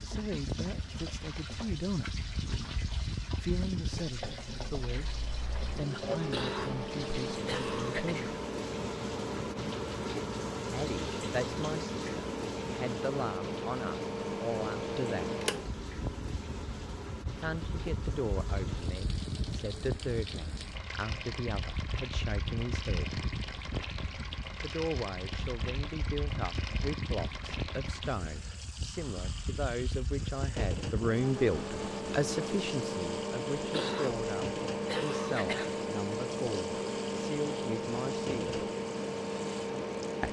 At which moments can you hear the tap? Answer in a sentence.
You can hear the tap from 0.0 to 40.2 s.